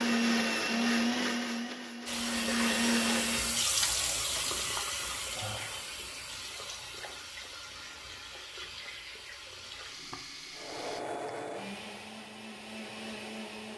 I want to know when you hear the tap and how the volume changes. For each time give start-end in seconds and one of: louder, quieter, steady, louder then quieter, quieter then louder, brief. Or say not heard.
2.0-11.0 quieter.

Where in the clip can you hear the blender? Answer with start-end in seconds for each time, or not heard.
0.0-3.6, 10.6-13.7.